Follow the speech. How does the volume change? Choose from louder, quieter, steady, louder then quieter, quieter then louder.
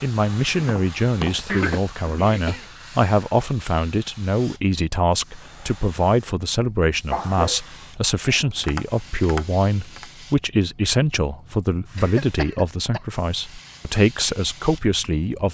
steady.